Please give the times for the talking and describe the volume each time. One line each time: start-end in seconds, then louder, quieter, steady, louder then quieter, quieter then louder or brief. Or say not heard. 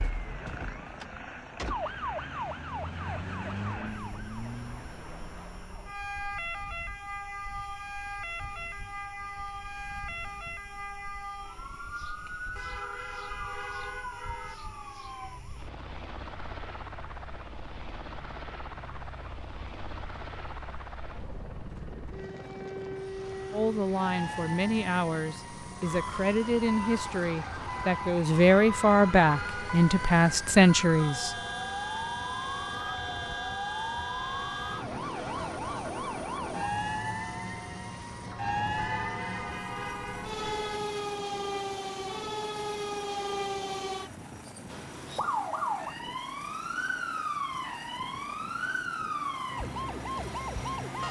23.5-31.4 louder.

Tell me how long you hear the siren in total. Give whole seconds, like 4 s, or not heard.
51 s.